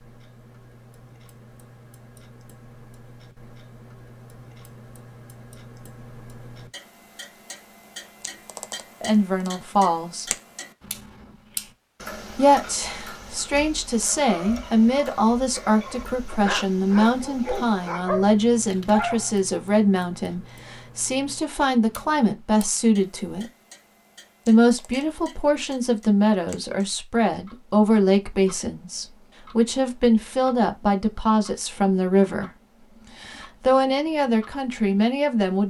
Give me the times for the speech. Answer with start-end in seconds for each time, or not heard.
9.0-10.3, 12.3-23.5, 24.4-32.5, 33.1-35.6.